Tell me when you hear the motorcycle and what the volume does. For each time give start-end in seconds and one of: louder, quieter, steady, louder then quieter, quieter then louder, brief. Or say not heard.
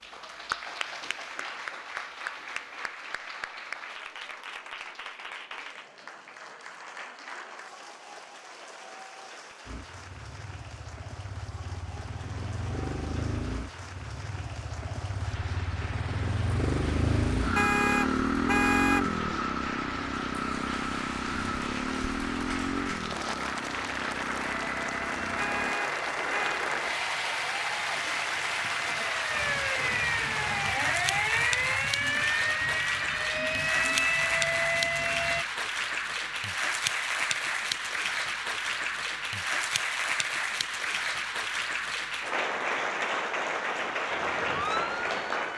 9.7-25.8 louder then quieter.